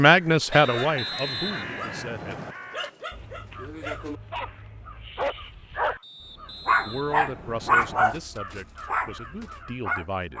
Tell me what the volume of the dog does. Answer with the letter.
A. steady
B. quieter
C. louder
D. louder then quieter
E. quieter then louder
C.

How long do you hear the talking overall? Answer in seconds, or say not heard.
6 s.